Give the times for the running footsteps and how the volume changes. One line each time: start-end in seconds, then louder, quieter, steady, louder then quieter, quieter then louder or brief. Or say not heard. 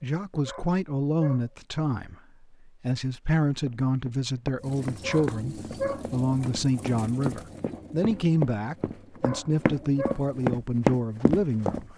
3.6-11.8 quieter then louder.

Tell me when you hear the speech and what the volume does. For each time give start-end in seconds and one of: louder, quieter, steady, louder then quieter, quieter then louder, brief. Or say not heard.
0.0-11.9 steady.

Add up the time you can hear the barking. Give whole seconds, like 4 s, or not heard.
4 s.